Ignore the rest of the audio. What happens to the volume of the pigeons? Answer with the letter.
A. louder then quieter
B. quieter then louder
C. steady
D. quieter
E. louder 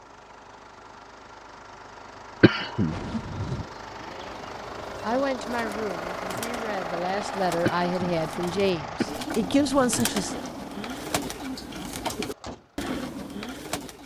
E.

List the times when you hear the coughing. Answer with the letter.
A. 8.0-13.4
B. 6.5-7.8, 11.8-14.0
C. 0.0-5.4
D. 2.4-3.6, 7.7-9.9
D.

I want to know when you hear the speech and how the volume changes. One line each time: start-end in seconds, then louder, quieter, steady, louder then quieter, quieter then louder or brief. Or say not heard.
5.0-10.4 louder.